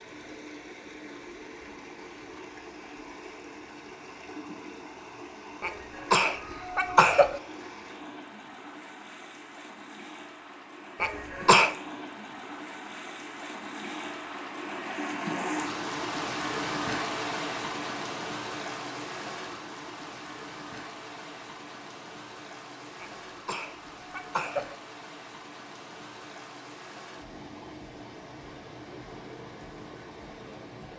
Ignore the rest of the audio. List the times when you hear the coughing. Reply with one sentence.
You can hear the coughing from 5.6 to 7.3 s, from 11.0 to 11.8 s and from 23.0 to 24.7 s.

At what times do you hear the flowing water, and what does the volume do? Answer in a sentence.
The flowing water can be heard from 0.0 to 30.9 s, getting louder then quieter.